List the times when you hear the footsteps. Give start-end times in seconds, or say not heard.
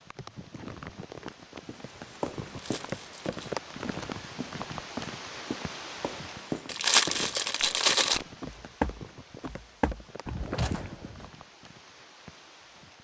1.6-11.3.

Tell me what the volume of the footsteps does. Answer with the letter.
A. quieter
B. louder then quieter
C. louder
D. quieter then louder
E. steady
C.